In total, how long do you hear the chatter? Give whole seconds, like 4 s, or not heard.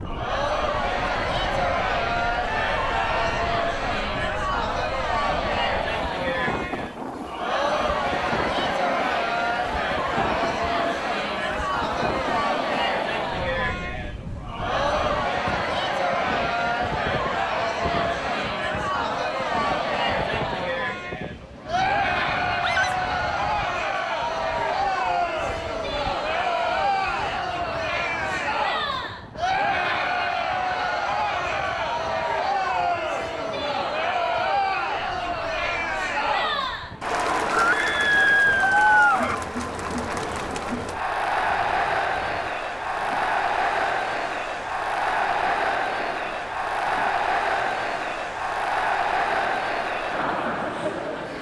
51 s.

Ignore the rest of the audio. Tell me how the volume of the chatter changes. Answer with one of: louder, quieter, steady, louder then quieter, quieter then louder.
steady.